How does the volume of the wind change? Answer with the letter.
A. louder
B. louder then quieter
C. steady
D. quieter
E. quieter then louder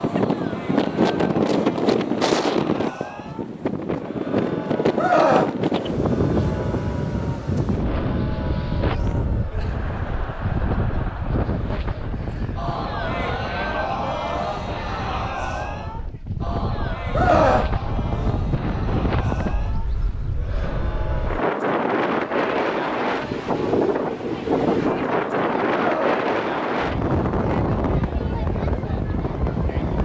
E.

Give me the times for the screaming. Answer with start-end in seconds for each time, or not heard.
5.0-5.5, 17.1-18.4, 25.8-26.2.